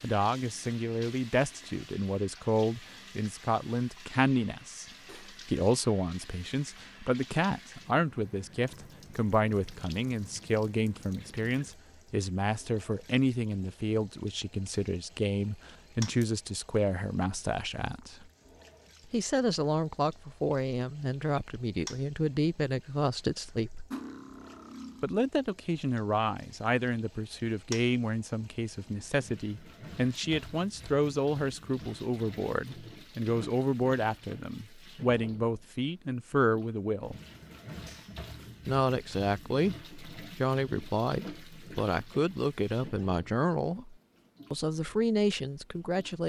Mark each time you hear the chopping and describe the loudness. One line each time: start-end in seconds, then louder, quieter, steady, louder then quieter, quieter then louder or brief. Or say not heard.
not heard.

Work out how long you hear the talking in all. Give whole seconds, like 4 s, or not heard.
42 s.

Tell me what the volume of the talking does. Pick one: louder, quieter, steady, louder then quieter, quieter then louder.
steady.